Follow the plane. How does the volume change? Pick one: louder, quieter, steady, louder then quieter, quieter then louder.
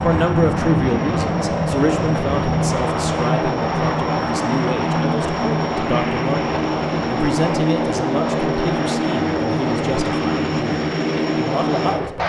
steady.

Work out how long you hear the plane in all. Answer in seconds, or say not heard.
12 s.